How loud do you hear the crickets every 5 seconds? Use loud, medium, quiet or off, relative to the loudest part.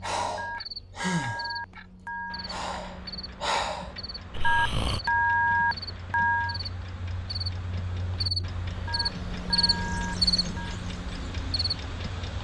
quiet, loud, loud.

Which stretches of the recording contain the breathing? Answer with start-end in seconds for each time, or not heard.
0.0-5.0.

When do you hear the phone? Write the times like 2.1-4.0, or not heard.
0.3-2.5, 4.4-6.6, 8.8-10.8.